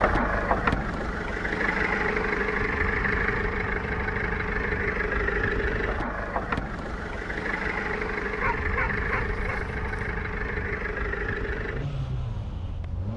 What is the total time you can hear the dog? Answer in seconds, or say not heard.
2 s.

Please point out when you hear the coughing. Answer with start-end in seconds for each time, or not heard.
not heard.